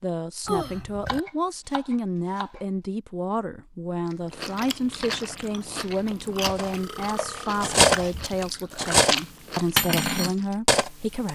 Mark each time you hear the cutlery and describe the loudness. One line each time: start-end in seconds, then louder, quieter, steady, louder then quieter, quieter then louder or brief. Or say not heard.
6.5-11.3 louder then quieter.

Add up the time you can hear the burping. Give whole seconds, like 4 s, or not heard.
2 s.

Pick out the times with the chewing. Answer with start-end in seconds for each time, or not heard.
4.0-10.6.